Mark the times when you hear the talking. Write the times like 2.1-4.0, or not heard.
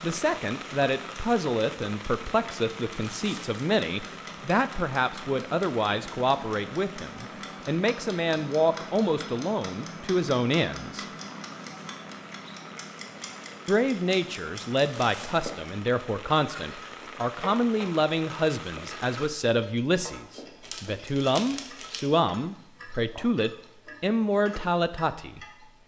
0.0-11.1, 13.7-25.4.